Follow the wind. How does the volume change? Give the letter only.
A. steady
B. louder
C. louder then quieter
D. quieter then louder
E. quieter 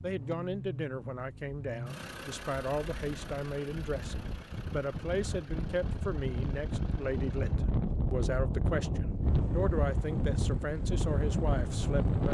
B.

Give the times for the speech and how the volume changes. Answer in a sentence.
The speech can be heard from 0.0 to 12.2 s, at a steady volume.